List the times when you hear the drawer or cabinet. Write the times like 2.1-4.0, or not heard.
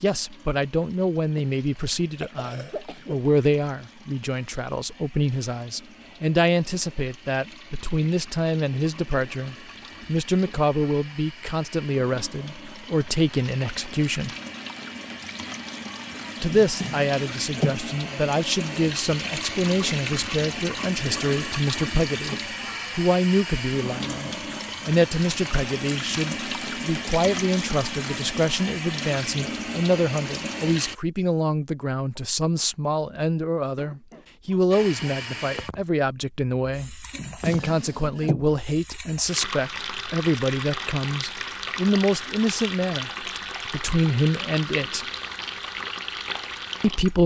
16.4-17.8, 37.1-38.5.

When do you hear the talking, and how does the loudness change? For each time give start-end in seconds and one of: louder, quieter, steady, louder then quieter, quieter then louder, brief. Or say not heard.
0.0-14.3 steady
16.4-22.4 steady
22.9-45.0 steady
46.8-47.2 brief.